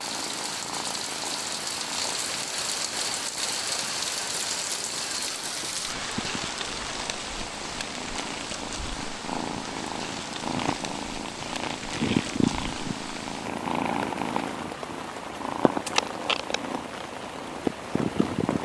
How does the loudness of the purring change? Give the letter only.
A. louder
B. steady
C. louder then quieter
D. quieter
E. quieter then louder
A.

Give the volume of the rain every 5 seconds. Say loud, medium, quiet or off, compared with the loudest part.
loud, loud, medium, medium.